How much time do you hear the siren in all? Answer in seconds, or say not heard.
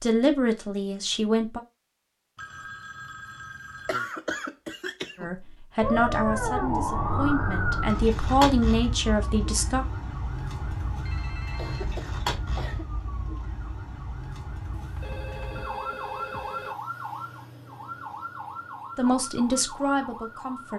15 s.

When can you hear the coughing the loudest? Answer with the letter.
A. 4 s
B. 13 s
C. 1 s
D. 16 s
A.